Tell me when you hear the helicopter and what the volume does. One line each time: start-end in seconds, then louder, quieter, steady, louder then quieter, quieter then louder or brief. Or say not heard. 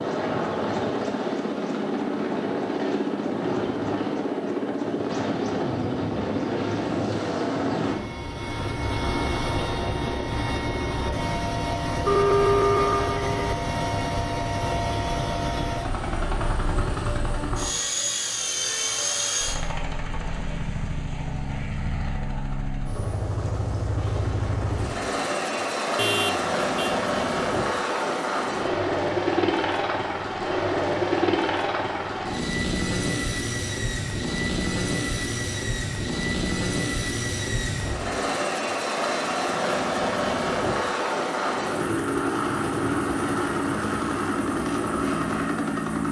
0.0-46.0 steady.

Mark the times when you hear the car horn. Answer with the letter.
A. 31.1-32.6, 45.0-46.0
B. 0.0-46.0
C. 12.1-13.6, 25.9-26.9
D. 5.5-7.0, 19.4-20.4
C.